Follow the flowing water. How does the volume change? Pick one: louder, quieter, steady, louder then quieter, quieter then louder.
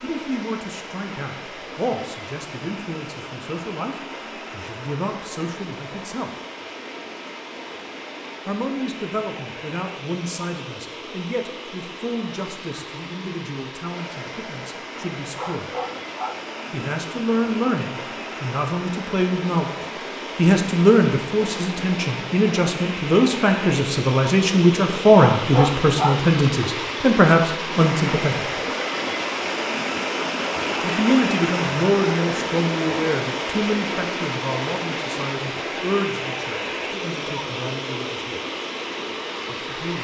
louder.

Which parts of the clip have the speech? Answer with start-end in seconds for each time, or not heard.
0.0-6.3, 8.4-15.7, 16.7-28.4, 30.8-38.4, 39.5-39.9.